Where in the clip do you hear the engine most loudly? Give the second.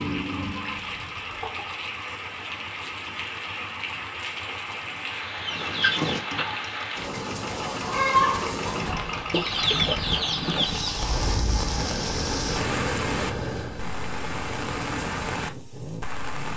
13 s.